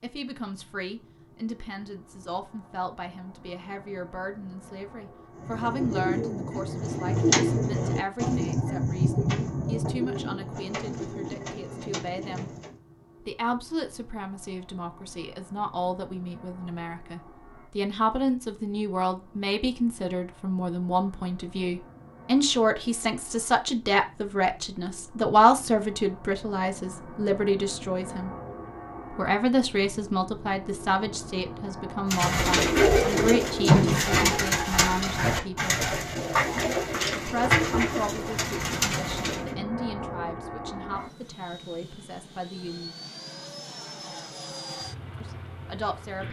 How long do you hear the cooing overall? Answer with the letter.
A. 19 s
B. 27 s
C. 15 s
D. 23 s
C.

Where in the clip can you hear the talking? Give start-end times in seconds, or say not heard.
0.0-12.5, 13.2-28.3, 29.1-35.8, 37.1-43.0, 45.2-46.2.